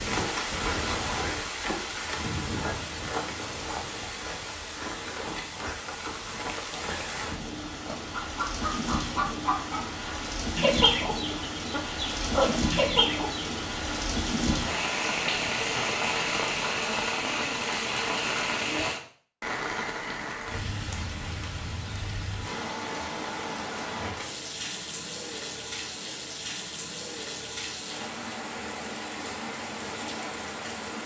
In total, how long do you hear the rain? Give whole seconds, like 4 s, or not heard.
31 s.